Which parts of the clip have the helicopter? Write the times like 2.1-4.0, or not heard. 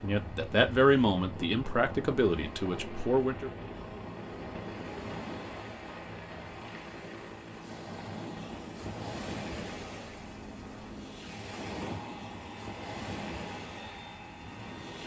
0.1-15.0.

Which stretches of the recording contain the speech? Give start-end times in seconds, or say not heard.
0.0-3.5.